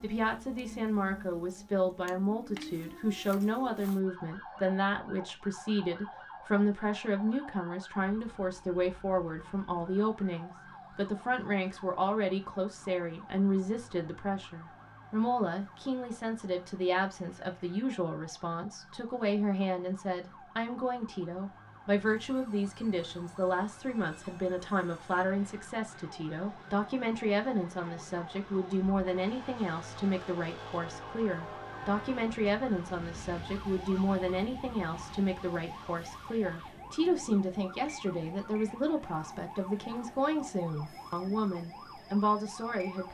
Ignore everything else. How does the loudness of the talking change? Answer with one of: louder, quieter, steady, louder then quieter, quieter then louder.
steady.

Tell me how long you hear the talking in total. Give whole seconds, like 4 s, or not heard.
43 s.